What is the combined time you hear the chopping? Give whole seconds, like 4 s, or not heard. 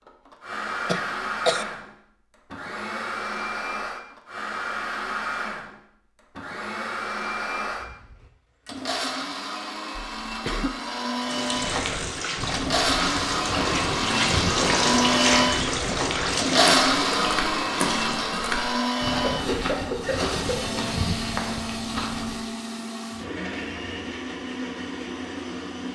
not heard.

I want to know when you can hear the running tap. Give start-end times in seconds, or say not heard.
11.2-18.4.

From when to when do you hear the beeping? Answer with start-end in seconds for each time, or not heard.
not heard.